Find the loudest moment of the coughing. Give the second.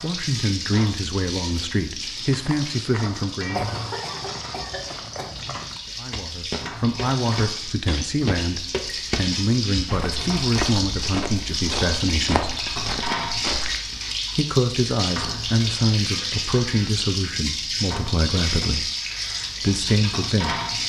4 s.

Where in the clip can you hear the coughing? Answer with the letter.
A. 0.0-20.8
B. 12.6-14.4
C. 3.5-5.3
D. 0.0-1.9
C.